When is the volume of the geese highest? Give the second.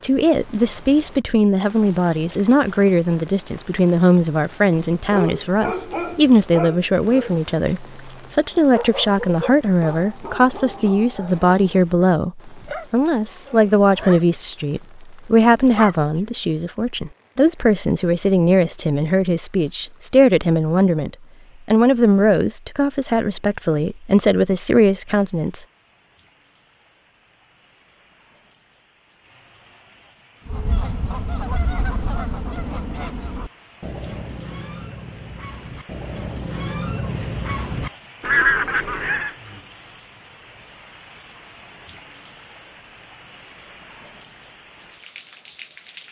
38 s.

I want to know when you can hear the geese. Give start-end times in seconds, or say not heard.
30.4-39.4.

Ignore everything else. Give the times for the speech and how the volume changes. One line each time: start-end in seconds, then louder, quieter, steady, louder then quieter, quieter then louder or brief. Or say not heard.
0.0-25.6 steady.